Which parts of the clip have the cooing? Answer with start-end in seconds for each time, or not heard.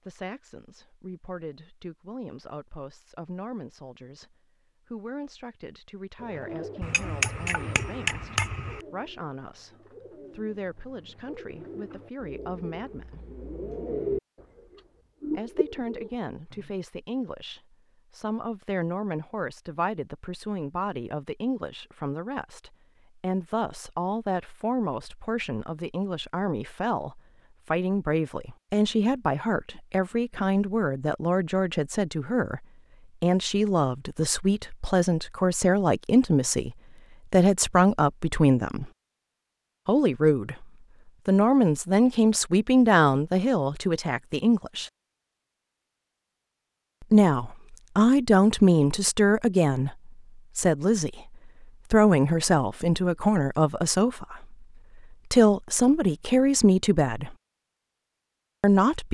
6.2-16.7.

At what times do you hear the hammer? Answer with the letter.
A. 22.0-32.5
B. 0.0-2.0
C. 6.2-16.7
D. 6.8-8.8
D.